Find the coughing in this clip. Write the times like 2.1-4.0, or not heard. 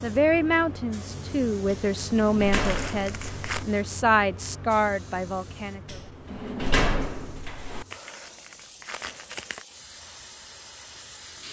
not heard.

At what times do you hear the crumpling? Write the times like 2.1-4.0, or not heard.
2.5-3.6, 7.9-9.7.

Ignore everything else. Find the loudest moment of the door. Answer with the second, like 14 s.
7 s.